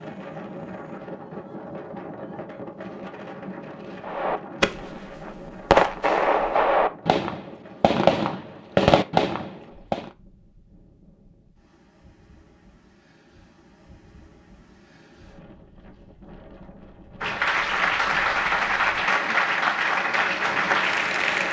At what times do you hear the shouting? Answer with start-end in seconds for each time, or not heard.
not heard.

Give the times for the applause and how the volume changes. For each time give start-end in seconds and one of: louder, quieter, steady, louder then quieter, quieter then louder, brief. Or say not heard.
17.2-21.4 steady.